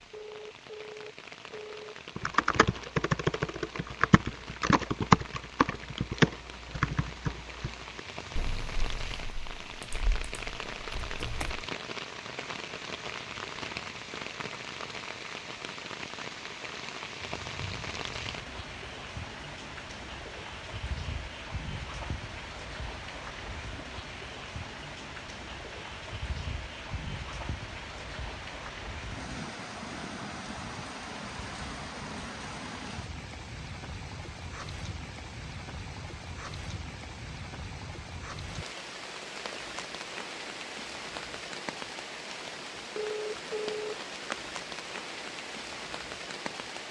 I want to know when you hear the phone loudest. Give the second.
43 s.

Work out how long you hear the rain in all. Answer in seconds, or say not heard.
47 s.